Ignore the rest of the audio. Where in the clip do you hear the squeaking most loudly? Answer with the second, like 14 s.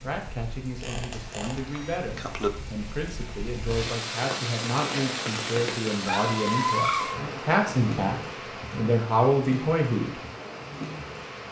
7 s.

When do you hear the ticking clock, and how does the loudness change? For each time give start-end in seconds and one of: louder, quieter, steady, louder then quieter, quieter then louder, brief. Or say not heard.
not heard.